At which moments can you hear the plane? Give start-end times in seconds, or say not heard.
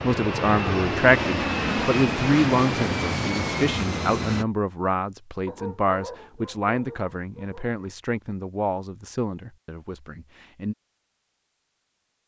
0.0-4.5.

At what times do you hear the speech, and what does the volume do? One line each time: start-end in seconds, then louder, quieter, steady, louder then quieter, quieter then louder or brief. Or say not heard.
0.0-10.8 quieter.